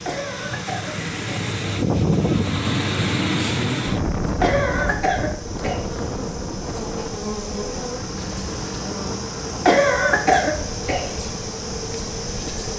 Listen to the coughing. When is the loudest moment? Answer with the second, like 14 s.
10 s.